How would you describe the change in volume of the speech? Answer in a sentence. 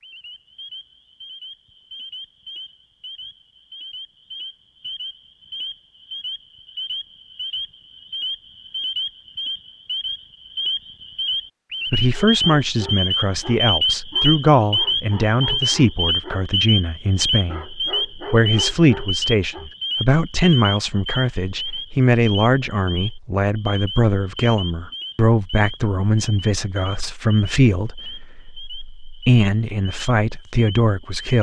The loudness of the speech stays about the same.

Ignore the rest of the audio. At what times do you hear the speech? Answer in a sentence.
The speech can be heard from 11.9 to 31.3 s.